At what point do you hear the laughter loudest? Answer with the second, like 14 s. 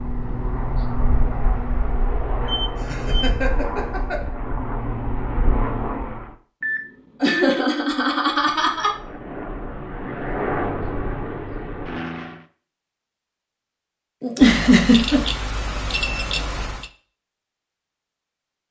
15 s.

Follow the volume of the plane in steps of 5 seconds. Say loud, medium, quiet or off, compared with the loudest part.
loud, loud, loud, off.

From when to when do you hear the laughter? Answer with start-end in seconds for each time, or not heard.
2.8-4.2, 7.2-8.9, 14.2-15.2.